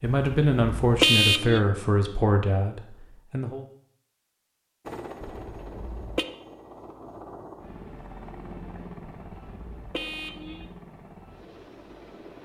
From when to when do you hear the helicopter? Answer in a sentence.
The helicopter can be heard from 4.8 to 12.4 s.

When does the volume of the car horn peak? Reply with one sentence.
The volume of the car horn peaks at 1 second.